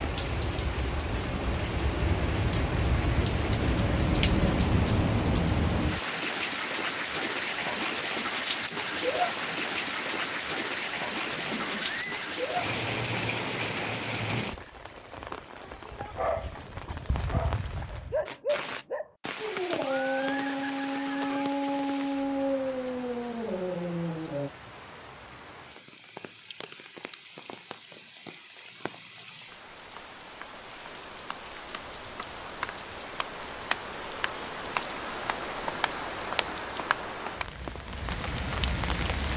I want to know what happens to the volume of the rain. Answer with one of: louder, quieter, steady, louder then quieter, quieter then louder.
quieter then louder.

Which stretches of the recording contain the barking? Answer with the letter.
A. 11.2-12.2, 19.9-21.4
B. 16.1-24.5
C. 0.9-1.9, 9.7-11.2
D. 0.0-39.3
B.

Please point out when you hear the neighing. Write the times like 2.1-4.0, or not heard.
11.2-12.2, 19.9-21.4.